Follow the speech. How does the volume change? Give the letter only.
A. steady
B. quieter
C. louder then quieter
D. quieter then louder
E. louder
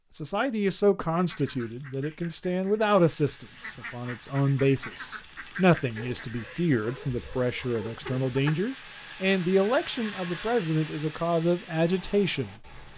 A.